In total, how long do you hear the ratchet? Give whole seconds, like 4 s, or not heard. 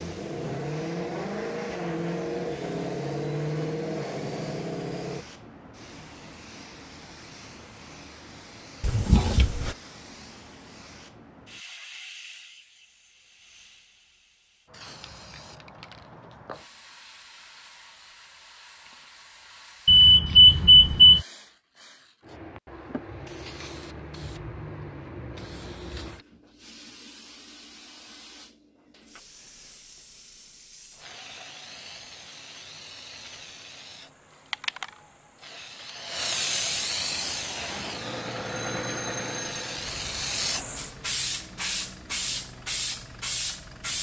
not heard.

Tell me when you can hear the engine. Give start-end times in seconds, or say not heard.
0.0-5.2, 37.0-43.9.